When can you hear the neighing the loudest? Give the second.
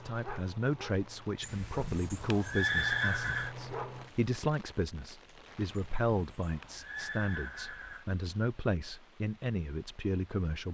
3 s.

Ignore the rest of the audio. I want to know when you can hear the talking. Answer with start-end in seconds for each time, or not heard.
0.0-10.6.